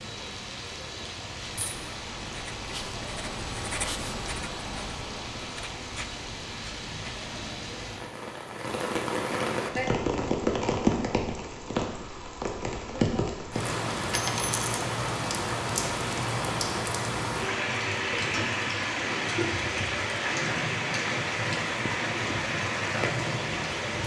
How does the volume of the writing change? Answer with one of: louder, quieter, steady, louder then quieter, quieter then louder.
louder then quieter.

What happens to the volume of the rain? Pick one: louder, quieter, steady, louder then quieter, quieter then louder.
louder.